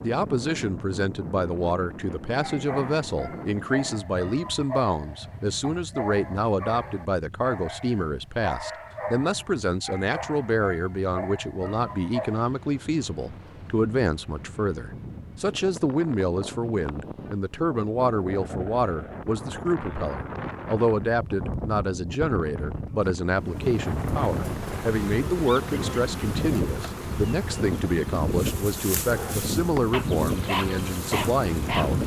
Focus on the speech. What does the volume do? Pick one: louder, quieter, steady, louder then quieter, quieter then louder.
steady.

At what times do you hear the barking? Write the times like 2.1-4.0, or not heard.
2.4-12.4, 29.1-32.0.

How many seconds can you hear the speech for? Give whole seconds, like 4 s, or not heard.
32 s.